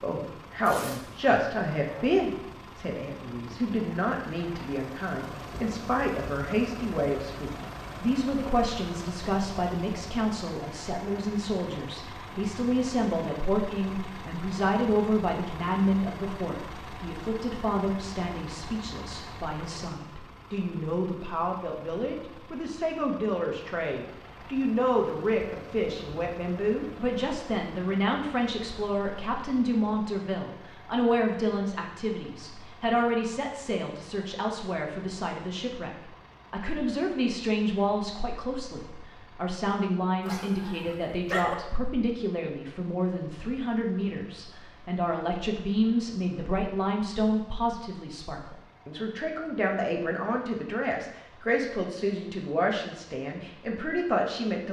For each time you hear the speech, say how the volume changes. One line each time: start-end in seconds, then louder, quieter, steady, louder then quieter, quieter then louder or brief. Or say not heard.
0.0-35.9 steady
36.5-54.6 steady.